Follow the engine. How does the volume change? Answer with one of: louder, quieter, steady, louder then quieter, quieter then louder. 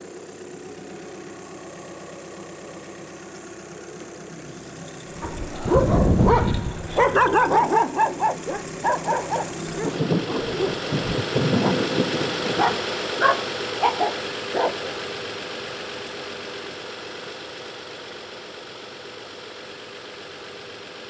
louder then quieter.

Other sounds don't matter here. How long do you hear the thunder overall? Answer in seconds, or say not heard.
3 s.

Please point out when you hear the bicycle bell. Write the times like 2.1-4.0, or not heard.
not heard.